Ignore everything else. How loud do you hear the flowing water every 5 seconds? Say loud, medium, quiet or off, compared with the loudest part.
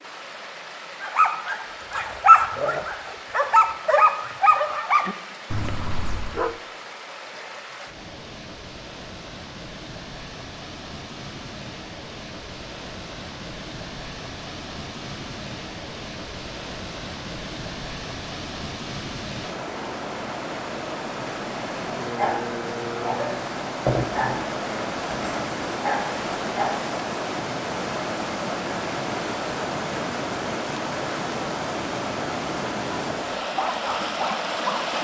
medium, medium, medium, medium, loud, loud, loud.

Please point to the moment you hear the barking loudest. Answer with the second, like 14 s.
2 s.